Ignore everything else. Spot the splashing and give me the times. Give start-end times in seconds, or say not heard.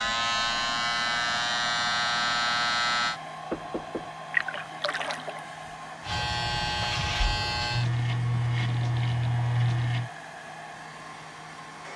4.3-5.4.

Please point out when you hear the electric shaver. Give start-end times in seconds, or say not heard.
0.0-3.2, 6.0-10.1.